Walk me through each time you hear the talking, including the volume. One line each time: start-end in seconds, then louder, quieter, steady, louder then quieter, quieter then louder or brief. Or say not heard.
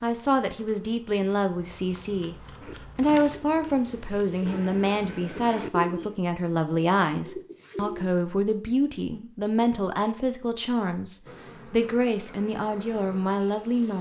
0.0-2.4 brief
3.0-13.9 steady.